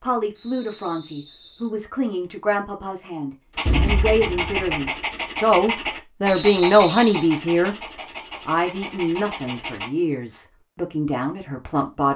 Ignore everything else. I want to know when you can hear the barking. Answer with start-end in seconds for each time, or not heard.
3.5-9.9.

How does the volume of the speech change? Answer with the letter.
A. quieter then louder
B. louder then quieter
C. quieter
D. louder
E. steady
B.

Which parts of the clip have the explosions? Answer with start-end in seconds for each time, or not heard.
3.6-4.8.